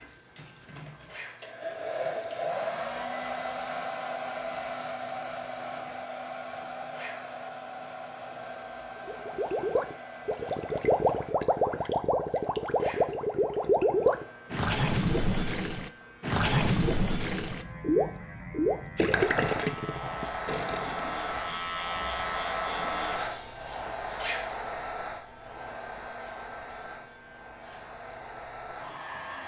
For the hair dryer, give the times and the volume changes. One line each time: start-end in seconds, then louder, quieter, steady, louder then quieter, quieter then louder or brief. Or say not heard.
0.0-11.4 quieter
19.1-29.4 quieter.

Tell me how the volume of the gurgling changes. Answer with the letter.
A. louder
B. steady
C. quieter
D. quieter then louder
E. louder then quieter
B.